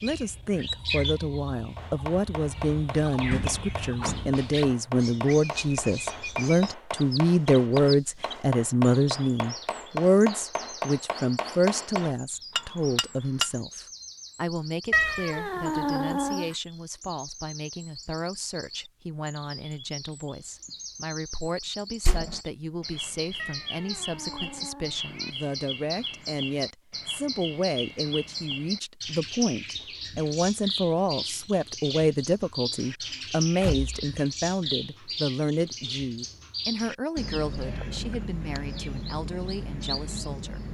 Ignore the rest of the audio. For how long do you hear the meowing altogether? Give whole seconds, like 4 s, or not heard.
4 s.